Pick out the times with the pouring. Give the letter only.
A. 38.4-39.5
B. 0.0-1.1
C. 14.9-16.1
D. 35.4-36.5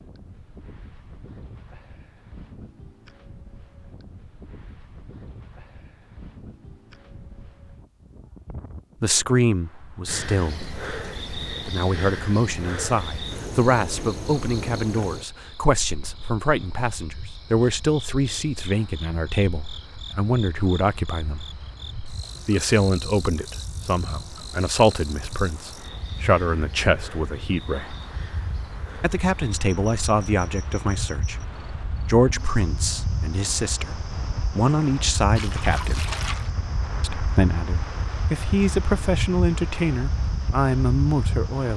D.